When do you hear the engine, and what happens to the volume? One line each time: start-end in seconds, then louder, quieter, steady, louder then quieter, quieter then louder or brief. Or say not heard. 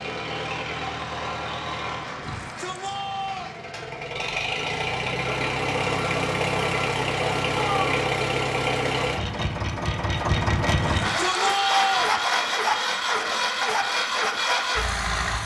0.0-15.4 louder.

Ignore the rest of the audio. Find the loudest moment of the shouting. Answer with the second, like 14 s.
12 s.